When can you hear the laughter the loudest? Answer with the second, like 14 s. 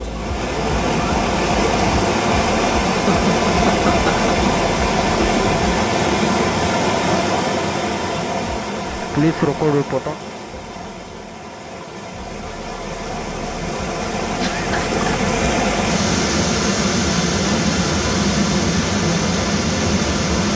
9 s.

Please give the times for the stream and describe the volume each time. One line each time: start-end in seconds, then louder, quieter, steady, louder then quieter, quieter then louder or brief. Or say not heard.
0.0-20.5 quieter then louder.